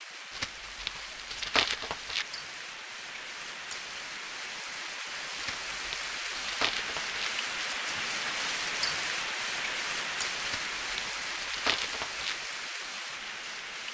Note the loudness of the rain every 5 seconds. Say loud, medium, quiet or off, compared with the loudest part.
medium, loud, loud.